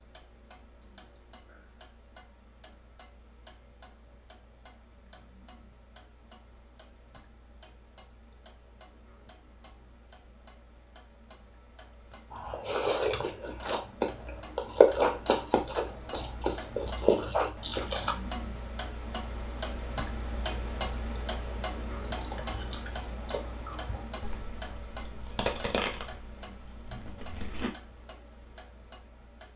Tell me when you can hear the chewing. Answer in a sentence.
You can hear the chewing from 12.3 to 18.1 s and from 21.9 to 27.7 s.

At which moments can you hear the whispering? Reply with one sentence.
The whispering can't be heard in this clip.